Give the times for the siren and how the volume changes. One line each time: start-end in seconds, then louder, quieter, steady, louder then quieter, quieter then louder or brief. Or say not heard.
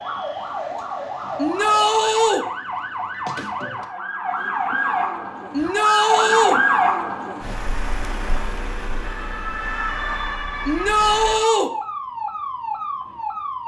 0.0-13.6 louder then quieter.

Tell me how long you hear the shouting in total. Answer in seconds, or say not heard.
3 s.